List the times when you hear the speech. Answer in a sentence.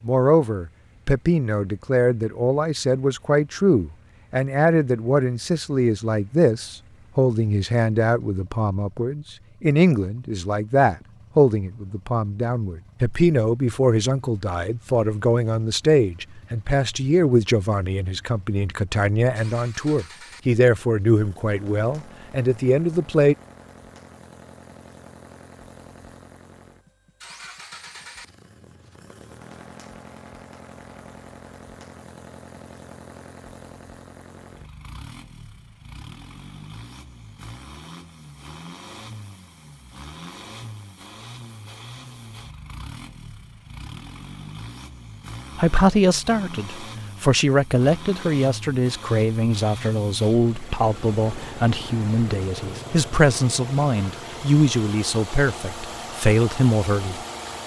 The speech can be heard from 0.0 to 23.4 s and from 45.5 to 57.2 s.